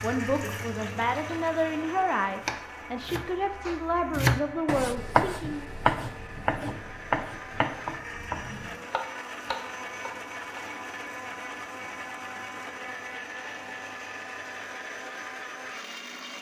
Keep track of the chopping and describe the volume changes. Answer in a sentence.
The loudness of the chopping goes up, then down.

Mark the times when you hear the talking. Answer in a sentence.
You can hear the talking from 0.0 to 5.7 s.